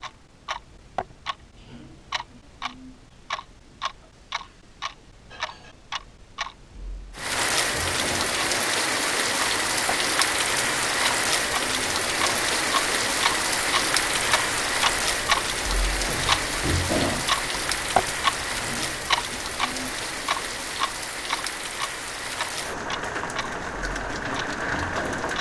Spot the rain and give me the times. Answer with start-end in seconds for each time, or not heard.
7.2-25.3.